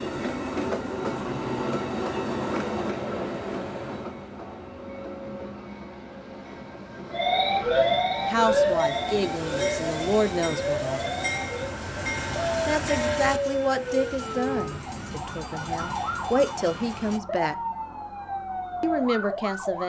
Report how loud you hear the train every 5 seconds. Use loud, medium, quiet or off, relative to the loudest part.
loud, medium, loud, medium.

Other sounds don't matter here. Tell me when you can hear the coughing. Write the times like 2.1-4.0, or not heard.
not heard.